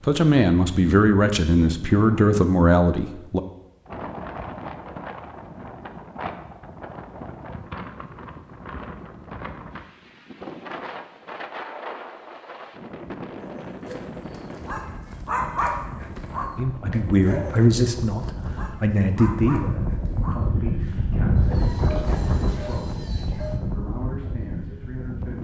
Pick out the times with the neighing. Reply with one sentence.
You can't hear the neighing here.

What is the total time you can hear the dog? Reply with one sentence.
You can hear the dog for 10 seconds altogether.